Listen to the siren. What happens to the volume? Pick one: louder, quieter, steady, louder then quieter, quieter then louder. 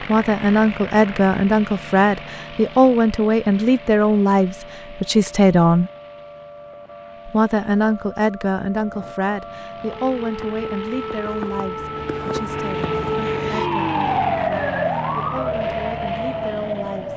louder.